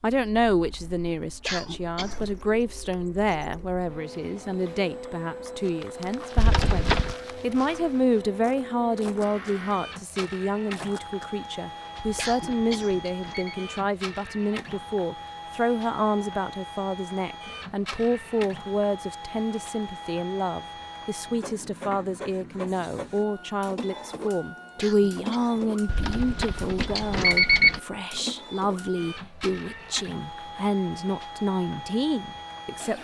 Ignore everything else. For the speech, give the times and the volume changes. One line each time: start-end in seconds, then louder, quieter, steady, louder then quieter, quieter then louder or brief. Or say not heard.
0.0-32.9 steady.